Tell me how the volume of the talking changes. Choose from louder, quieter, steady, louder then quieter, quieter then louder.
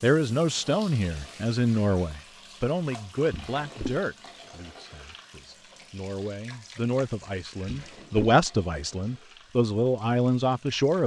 quieter then louder.